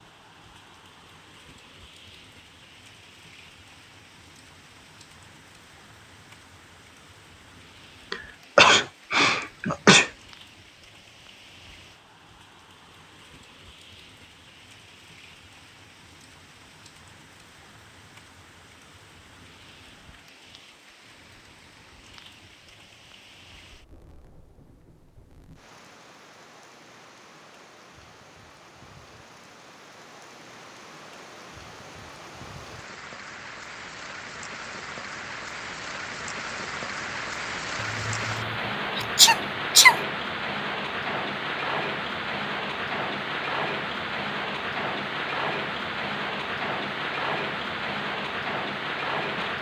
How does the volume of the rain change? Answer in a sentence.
The loudness of the rain goes up.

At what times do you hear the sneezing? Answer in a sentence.
The sneezing can be heard from 8.1 to 10.1 s and from 37.8 to 40.0 s.